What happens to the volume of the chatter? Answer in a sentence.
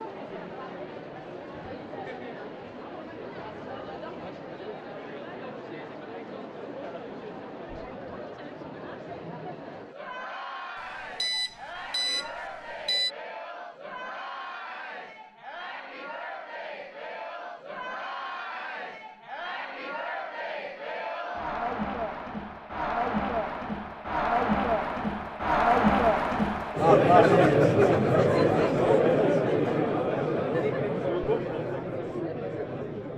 The volume of the chatter goes up.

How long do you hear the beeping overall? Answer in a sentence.
You can hear the beeping for 2 seconds altogether.